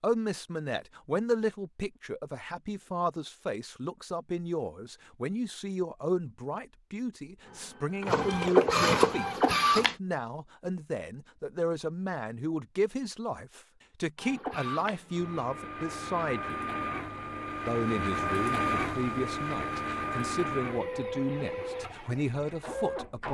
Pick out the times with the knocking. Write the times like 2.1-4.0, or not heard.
not heard.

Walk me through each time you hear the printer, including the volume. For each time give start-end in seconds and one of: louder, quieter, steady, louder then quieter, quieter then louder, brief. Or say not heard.
7.4-9.9 brief
14.2-23.2 louder then quieter.